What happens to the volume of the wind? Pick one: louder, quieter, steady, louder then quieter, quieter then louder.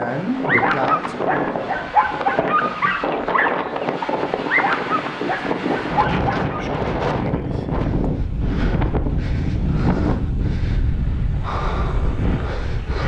steady.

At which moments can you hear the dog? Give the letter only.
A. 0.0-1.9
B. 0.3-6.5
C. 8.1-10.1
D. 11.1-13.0
B.